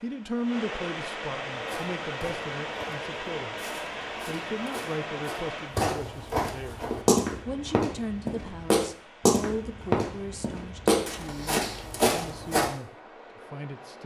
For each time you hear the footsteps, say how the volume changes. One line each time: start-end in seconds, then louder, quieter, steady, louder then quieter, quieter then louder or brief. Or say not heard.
1.5-12.7 louder.